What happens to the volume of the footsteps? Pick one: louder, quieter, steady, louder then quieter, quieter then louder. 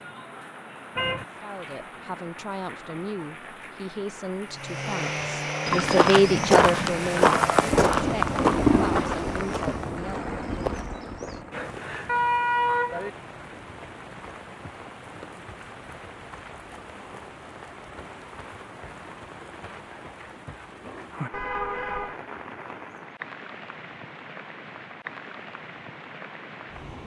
quieter.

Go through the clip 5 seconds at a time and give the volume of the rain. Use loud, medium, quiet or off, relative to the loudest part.
quiet, loud, medium, quiet, quiet, quiet.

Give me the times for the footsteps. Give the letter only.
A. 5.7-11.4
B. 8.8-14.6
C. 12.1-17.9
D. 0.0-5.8
A.